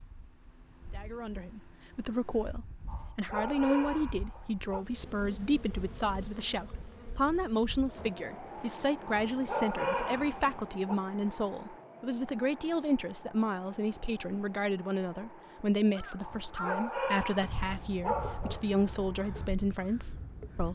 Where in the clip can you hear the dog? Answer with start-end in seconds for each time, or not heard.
2.9-4.8, 9.3-10.9, 16.2-18.6.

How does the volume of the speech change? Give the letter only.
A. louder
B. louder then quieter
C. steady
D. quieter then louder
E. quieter
C.